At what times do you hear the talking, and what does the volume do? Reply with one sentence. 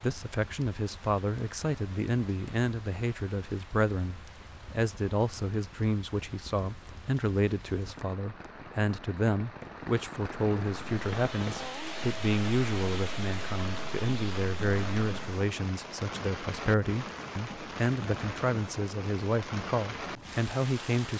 You can hear the talking from 0.0 to 21.1 s, at a steady volume.